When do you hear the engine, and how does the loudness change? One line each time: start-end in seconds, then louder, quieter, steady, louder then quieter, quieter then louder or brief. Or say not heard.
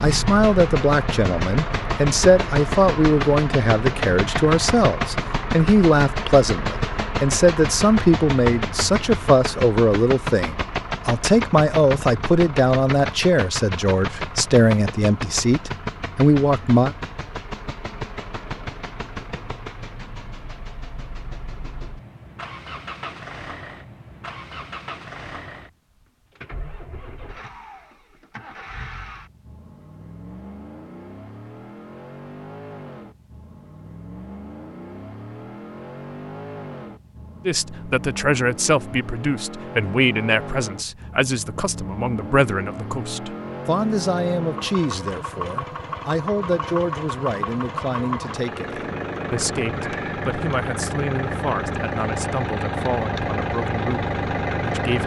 0.0-55.0 quieter then louder.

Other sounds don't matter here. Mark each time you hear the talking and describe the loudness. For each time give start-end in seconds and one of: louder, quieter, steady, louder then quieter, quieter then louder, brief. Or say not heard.
0.0-16.9 steady
37.5-55.0 quieter.